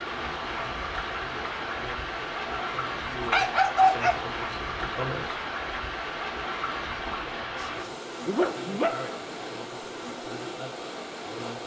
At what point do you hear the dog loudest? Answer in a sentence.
The loudest moment of the dog is at 4 seconds.